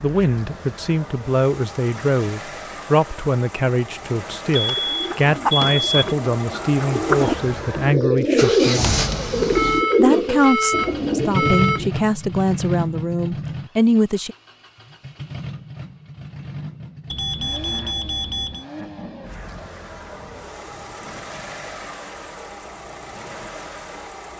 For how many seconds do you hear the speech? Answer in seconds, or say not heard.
13 s.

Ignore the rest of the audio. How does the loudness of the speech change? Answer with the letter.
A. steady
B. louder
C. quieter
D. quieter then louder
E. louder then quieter
A.